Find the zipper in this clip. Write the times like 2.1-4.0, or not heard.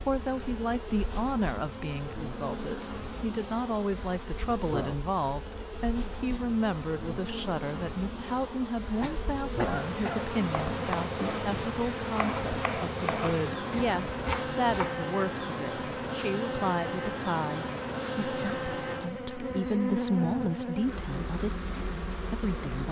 not heard.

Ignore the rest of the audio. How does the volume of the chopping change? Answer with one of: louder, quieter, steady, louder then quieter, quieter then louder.
steady.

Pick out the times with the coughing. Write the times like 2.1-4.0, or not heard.
9.0-10.3.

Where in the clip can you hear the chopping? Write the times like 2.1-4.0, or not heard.
10.4-15.0.